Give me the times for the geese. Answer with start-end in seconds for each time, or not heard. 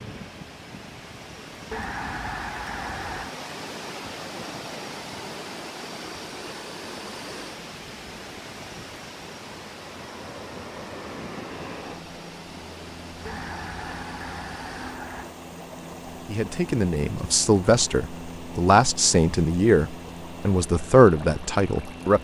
1.7-3.4, 13.2-15.3.